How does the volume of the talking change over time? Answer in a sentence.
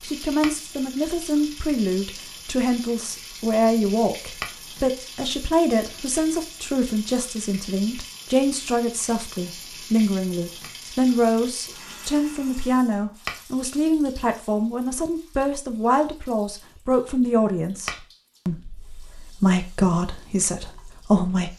The volume of the talking stays about the same.